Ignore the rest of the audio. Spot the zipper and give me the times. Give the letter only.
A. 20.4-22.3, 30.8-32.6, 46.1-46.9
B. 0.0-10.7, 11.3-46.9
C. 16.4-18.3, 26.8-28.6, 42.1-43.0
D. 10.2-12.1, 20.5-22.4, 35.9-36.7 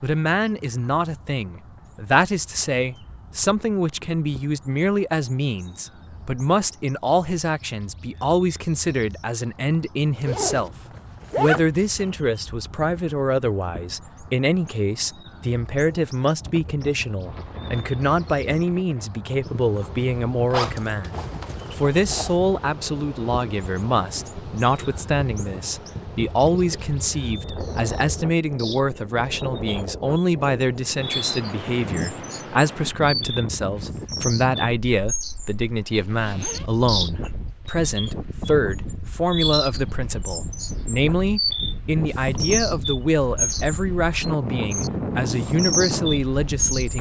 D.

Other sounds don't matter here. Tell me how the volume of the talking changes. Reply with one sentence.
The volume of the talking stays about the same.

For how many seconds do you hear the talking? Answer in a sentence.
The talking can be heard for 46 seconds in total.